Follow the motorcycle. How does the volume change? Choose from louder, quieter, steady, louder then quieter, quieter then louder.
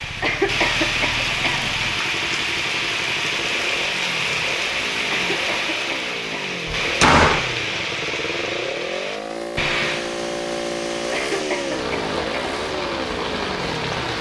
louder.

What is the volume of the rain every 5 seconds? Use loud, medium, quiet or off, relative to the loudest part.
loud, loud, medium.